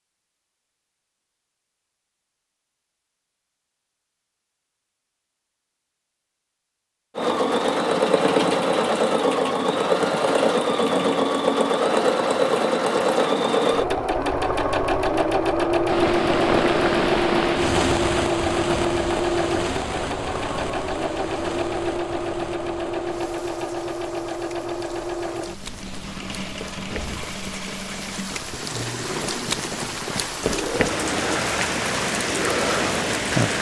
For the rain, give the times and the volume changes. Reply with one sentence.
The rain can be heard from 15.8 to 33.5 s, getting quieter then louder.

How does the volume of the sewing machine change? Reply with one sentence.
The volume of the sewing machine goes down.